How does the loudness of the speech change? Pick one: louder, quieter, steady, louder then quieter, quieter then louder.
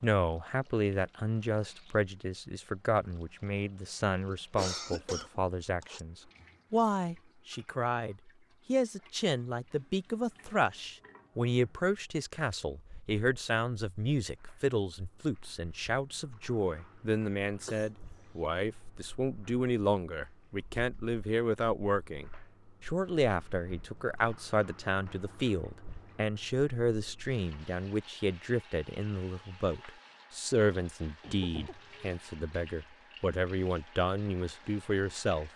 steady.